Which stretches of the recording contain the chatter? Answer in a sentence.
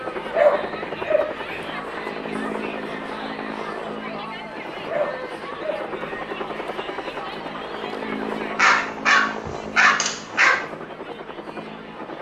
The chatter can be heard from 0.0 to 12.1 s.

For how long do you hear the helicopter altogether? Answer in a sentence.
You can hear the helicopter for 12 seconds altogether.